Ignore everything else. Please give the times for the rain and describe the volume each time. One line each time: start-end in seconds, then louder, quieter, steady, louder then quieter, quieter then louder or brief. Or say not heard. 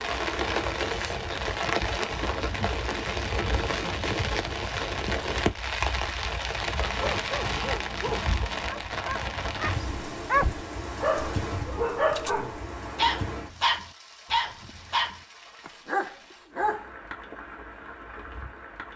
0.0-18.9 quieter.